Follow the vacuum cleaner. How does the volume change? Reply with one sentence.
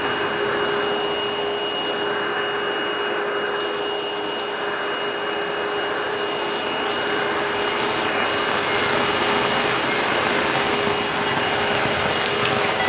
The volume of the vacuum cleaner stays about the same.